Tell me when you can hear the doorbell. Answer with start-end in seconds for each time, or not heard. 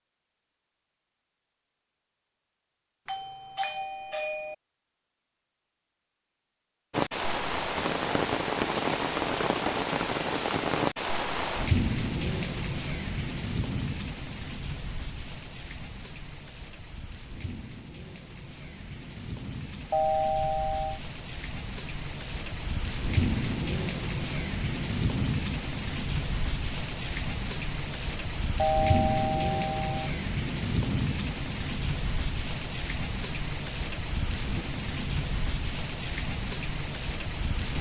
3.0-4.5, 19.9-21.0, 28.6-30.1.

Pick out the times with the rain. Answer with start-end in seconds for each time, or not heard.
6.9-37.7.